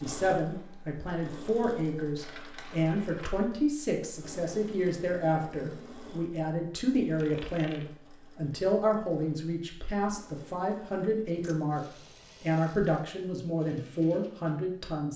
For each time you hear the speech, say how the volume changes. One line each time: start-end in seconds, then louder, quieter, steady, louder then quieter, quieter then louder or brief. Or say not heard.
0.0-15.1 steady.